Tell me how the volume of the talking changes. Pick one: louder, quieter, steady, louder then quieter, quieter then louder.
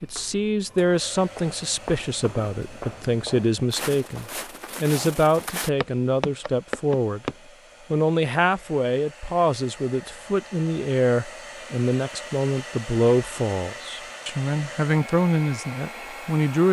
steady.